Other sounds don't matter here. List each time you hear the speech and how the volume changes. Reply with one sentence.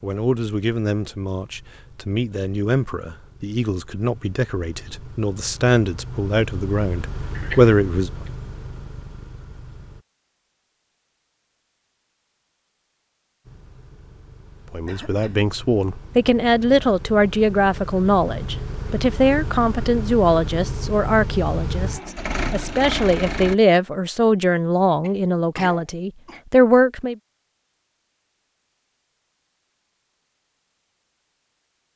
You can hear the speech from 0.0 to 8.1 s, getting louder; and from 14.7 to 27.1 s, at a steady volume.